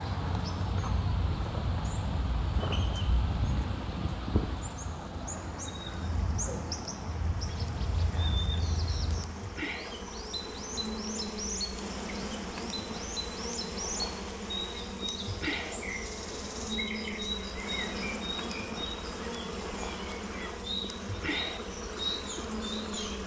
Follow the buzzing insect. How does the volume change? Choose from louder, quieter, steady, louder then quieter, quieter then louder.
louder.